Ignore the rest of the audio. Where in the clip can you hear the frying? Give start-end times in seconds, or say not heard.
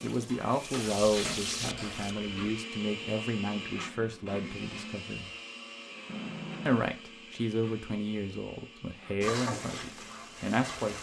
0.0-2.1, 9.2-10.9.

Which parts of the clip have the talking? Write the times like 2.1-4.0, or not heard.
0.0-5.3, 6.7-10.9.